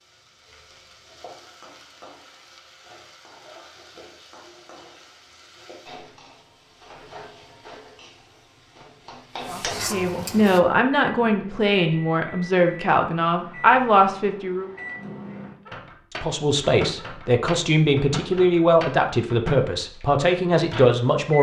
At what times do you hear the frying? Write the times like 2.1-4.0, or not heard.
0.0-10.6.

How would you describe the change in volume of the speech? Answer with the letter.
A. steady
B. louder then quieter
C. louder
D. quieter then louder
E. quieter
A.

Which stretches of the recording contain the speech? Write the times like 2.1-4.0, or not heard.
9.5-14.7, 16.1-21.3.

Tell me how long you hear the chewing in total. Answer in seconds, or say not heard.
not heard.